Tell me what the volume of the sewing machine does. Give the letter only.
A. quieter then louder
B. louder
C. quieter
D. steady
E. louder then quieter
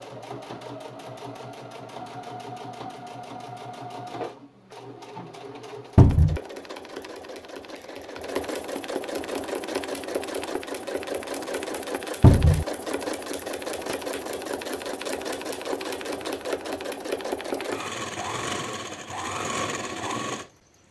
B.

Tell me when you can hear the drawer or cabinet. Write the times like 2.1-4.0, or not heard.
6.0-6.4, 12.2-12.7.